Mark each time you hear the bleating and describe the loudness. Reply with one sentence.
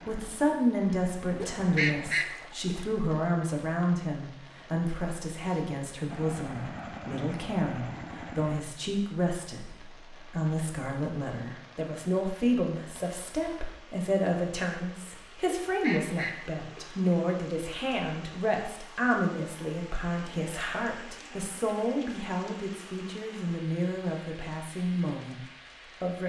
You can't hear the bleating here.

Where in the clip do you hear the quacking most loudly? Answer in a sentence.
The volume of the quacking peaks at 2 seconds.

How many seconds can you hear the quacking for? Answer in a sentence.
The quacking can be heard for 3 seconds in total.